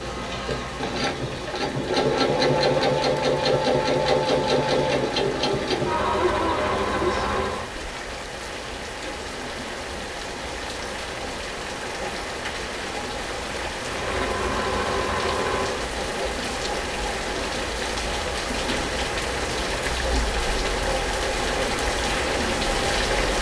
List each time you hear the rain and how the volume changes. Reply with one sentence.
The rain can be heard from 0.0 to 23.3 s, getting louder.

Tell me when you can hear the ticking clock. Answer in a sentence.
You can't hear the ticking clock here.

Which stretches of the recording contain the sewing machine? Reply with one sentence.
You can hear the sewing machine from 0.0 to 7.7 s and from 13.8 to 15.9 s.